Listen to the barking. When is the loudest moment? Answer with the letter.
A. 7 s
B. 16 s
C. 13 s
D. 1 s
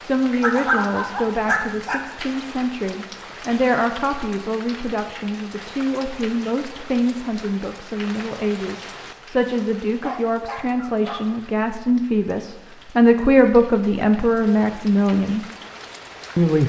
D.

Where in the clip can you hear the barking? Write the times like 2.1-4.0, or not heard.
0.4-2.0, 10.0-11.4.